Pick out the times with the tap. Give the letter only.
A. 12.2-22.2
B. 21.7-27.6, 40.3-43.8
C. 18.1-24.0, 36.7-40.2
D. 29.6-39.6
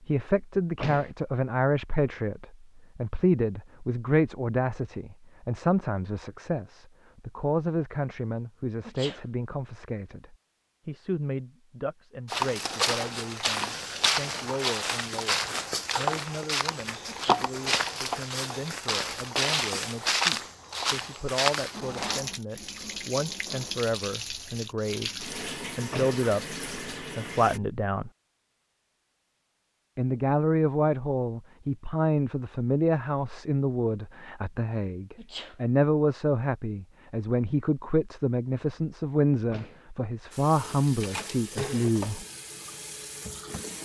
B.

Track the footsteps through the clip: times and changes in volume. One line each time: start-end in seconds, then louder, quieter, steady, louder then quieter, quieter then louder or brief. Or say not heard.
12.2-22.2 steady.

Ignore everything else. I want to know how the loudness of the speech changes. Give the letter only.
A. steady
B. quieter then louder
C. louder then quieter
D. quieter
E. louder
B.